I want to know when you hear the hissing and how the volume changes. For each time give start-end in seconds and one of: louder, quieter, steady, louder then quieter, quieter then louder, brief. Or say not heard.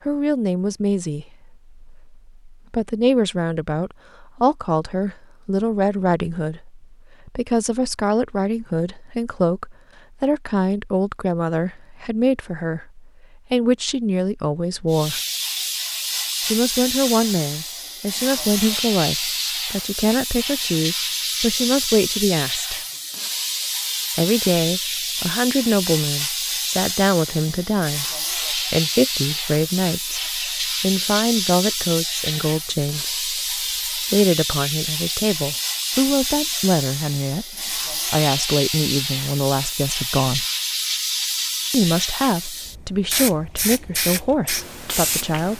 14.9-45.5 steady.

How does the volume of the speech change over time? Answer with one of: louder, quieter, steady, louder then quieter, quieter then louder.
steady.